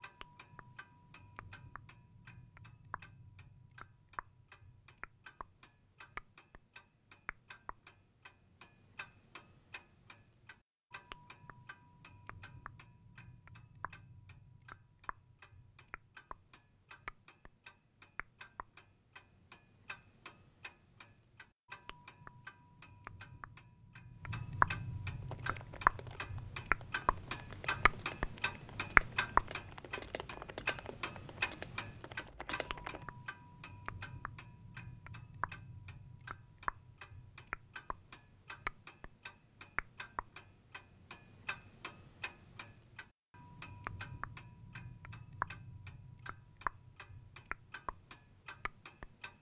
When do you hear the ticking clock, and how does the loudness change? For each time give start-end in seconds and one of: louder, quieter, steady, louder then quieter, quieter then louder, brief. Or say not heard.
0.0-49.3 louder then quieter.